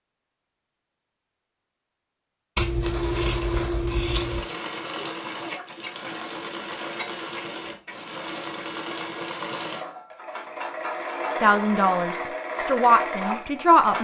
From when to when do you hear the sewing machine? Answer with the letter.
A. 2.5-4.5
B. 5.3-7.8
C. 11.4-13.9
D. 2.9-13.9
D.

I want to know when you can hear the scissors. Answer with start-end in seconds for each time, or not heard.
2.5-4.5.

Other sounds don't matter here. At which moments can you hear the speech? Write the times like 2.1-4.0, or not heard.
11.4-13.9.